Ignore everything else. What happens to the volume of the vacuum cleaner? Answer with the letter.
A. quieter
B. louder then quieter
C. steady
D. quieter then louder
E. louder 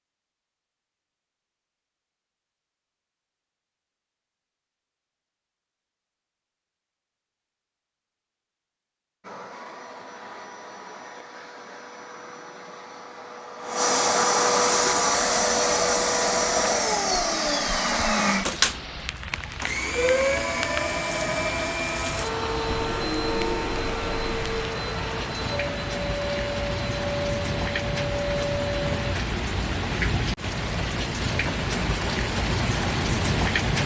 B.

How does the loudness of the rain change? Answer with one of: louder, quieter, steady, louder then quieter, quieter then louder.
louder.